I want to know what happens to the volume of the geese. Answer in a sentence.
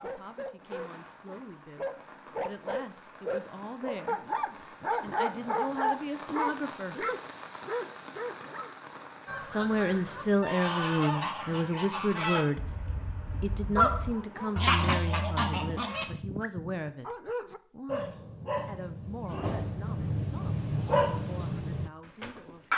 The volume of the geese goes up.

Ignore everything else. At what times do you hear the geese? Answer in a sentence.
The geese can be heard from 9.2 to 16.1 s.